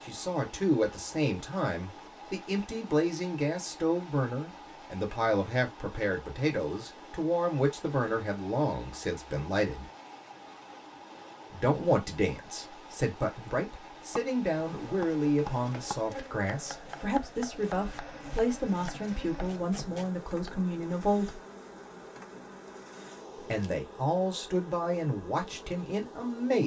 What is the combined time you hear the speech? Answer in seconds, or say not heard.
23 s.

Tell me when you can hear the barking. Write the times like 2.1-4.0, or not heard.
not heard.